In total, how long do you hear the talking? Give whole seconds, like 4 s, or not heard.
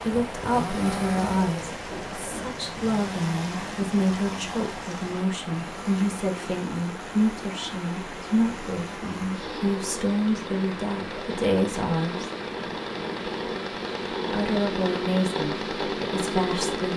15 s.